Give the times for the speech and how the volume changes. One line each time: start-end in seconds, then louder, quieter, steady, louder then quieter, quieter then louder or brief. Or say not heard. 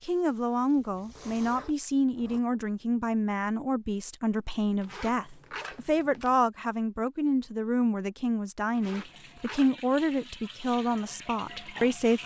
0.0-12.2 steady.